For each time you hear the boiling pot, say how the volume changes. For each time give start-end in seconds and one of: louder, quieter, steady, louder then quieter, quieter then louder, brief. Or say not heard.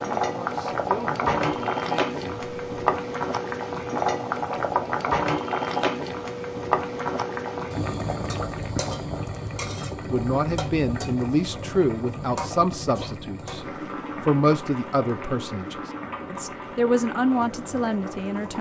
0.0-18.5 quieter.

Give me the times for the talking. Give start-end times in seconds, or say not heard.
0.2-3.0, 10.1-18.5.